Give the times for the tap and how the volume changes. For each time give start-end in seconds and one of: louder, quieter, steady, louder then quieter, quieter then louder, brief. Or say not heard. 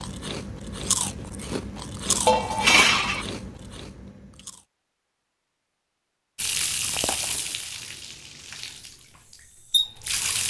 6.3-10.4 quieter then louder.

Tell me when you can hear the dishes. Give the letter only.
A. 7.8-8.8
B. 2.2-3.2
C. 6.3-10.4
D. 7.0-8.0
B.